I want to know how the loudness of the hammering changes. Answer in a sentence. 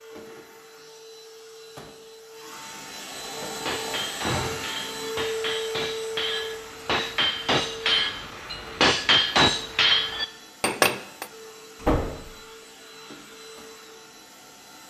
The volume of the hammering goes up.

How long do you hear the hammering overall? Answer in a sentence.
The hammering can be heard for 8 seconds in total.